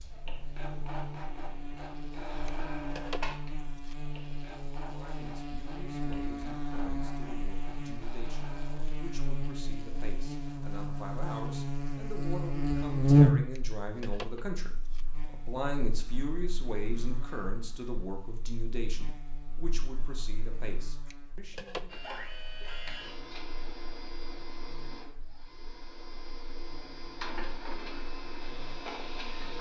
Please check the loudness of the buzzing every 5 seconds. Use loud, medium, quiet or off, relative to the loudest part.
quiet, quiet, loud, quiet, quiet, quiet.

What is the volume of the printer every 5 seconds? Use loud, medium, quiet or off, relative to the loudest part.
loud, medium, off, off, loud, loud.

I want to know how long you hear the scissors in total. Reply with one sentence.
The scissors can be heard for 4 seconds in total.